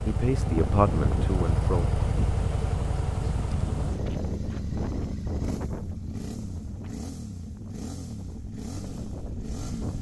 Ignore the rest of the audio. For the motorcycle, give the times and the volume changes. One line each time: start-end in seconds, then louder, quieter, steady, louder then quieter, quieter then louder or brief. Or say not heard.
0.0-9.9 quieter.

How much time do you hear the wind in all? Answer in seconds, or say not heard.
10 s.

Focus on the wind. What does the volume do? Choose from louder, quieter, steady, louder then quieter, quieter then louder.
quieter.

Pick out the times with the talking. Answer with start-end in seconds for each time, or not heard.
0.0-1.9.